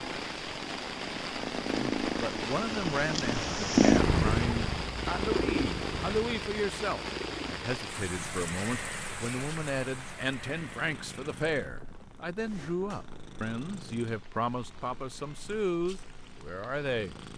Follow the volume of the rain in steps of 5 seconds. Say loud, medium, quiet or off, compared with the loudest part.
loud, loud, quiet, quiet.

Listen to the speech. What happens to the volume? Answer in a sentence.
The volume of the speech stays about the same.